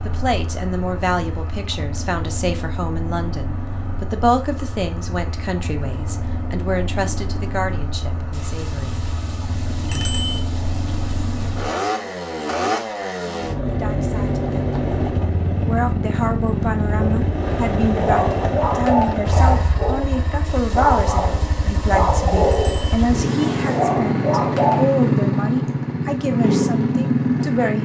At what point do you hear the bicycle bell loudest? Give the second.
10 s.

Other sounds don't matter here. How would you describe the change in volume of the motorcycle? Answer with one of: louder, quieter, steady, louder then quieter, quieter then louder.
louder.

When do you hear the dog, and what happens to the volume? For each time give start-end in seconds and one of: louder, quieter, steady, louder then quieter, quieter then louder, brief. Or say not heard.
17.0-24.9 steady.